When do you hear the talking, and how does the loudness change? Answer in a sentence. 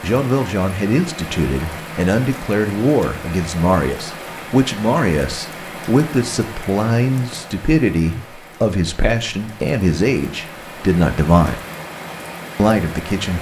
The talking can be heard from 0.0 to 11.6 s, at a steady volume; and briefly from 12.6 to 13.3 s.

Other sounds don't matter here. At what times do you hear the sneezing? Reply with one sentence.
The sneezing can't be heard in this clip.